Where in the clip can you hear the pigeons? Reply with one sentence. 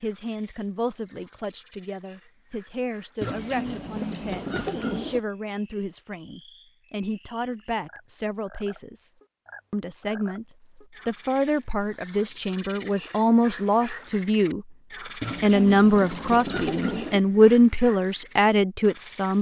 You can hear the pigeons from 3.2 to 5.2 s and from 15.2 to 17.2 s.